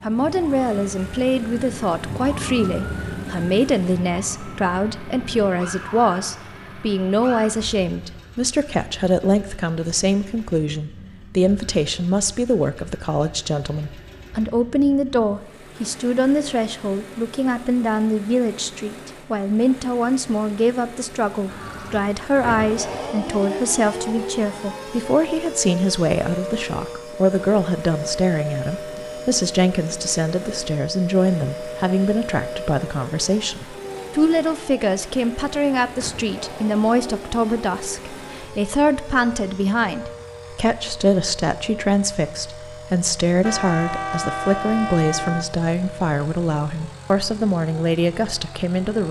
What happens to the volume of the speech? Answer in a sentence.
The volume of the speech stays about the same.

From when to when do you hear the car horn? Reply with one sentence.
You can hear the car horn from 43.4 to 45.5 s.